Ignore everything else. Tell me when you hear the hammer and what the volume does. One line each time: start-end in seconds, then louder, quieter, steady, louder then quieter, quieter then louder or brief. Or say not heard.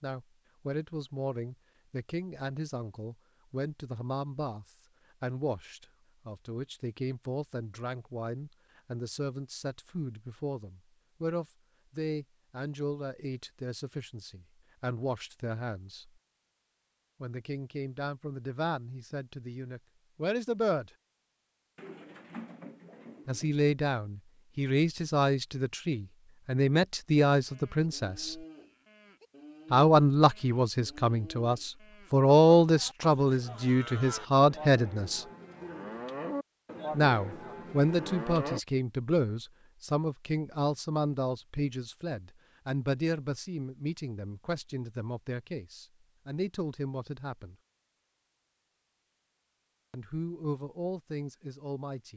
not heard.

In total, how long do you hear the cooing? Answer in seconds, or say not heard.
2 s.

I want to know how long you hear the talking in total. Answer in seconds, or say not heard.
43 s.